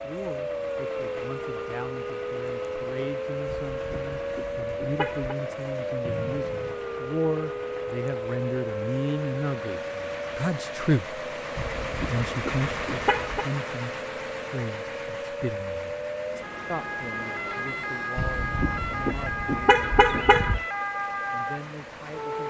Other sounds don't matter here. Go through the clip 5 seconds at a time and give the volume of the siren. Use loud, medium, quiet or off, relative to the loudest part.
loud, loud, medium, loud, loud.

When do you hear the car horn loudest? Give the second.
20 s.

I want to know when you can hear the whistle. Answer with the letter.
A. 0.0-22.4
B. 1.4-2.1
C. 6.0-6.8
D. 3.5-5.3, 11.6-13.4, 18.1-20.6
C.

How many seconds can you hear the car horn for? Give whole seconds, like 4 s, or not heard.
6 s.